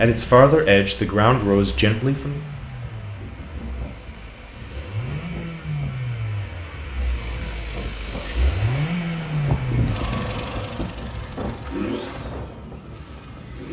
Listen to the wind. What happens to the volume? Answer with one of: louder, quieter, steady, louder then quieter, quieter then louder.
louder then quieter.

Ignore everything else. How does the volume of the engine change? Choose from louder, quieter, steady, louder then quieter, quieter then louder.
louder then quieter.